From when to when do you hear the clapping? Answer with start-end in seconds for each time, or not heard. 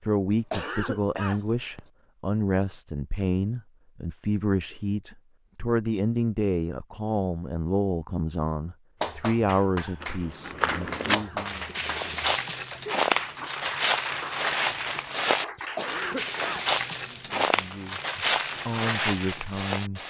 9.0-16.8.